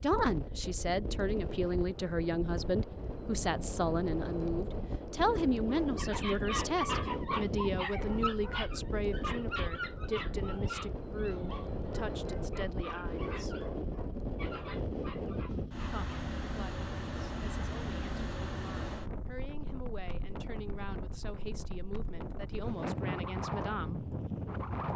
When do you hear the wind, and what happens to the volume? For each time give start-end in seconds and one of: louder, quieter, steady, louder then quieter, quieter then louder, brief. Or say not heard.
0.0-24.9 steady.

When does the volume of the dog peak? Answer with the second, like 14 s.
7 s.